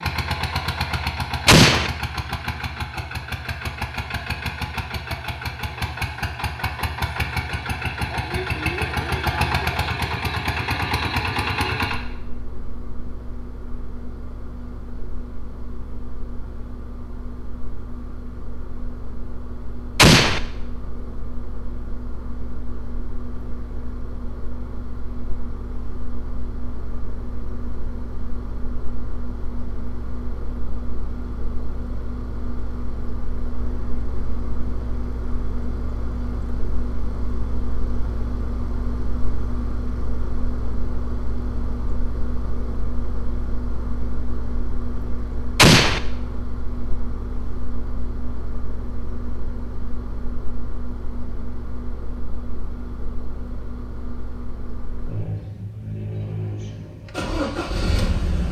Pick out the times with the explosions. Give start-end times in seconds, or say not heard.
1.4-1.9, 19.9-20.4, 45.5-46.0.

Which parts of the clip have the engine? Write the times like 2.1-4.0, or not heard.
0.0-58.4.